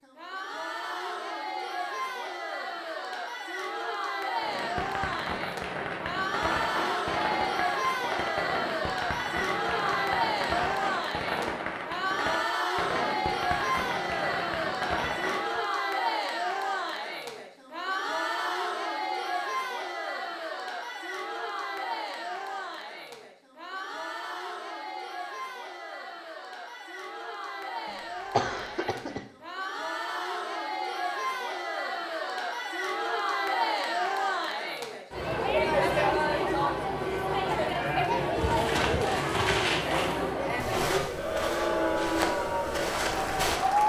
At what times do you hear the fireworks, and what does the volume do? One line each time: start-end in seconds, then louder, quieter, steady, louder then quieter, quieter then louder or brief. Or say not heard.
4.4-15.6 steady.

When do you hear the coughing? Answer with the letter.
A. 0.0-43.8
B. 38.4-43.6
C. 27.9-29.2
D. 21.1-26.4
C.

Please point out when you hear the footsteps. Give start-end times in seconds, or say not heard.
38.4-43.6.